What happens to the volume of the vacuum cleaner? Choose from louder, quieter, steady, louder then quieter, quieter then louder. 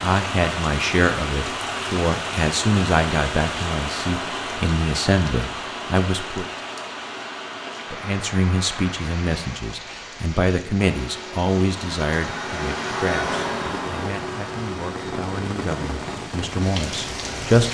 louder then quieter.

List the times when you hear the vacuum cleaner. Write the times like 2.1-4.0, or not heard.
10.8-16.1.